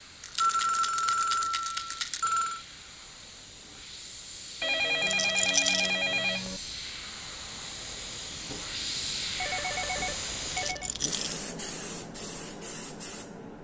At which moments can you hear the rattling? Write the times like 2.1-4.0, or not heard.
0.2-2.2, 5.0-5.9, 10.5-11.4.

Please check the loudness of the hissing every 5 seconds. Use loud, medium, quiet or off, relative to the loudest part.
medium, loud, loud.